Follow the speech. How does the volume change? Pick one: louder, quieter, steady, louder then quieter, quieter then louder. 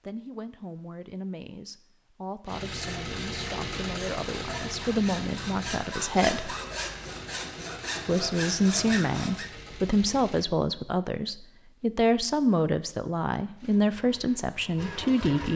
louder.